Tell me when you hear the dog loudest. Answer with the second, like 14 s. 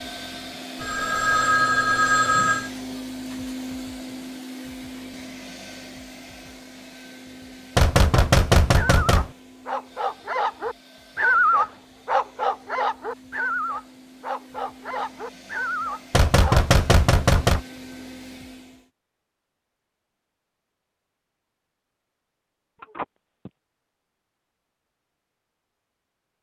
11 s.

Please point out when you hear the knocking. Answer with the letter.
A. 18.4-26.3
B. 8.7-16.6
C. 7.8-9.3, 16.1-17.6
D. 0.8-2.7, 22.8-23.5
C.